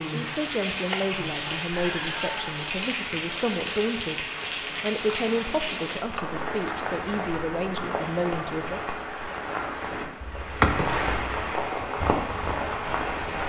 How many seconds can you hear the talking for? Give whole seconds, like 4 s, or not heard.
9 s.